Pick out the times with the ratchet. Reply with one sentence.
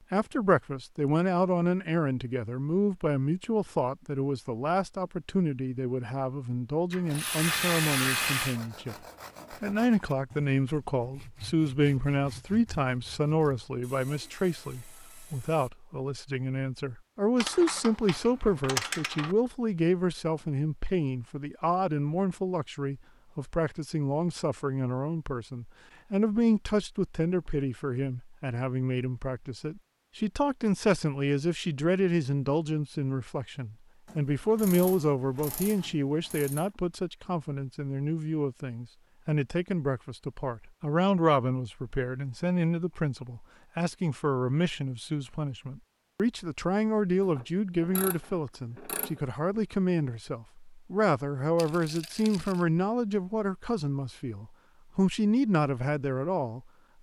The ratchet can be heard from 6.9 to 8.6 s, from 17.4 to 19.4 s, from 34.0 to 36.7 s and from 47.3 to 49.2 s.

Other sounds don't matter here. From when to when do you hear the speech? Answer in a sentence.
The speech can be heard from 0.1 to 56.6 s.